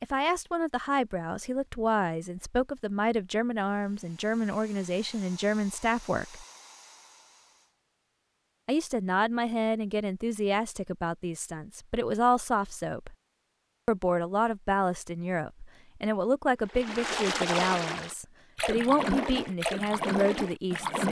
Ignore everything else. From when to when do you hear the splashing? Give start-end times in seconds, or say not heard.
16.6-21.0.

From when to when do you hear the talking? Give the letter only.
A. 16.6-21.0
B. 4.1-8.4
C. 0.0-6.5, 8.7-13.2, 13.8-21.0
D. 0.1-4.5
C.